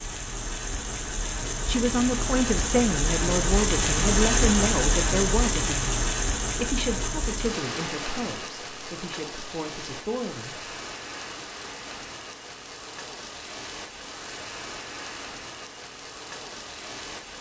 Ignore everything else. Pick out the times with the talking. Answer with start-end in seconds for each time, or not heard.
1.6-10.7.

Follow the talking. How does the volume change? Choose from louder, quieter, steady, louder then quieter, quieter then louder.
quieter.